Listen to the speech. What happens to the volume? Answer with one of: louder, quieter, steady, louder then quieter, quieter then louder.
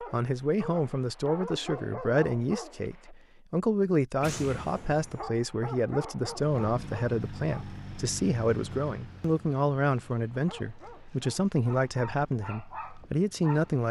steady.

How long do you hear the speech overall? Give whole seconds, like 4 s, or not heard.
14 s.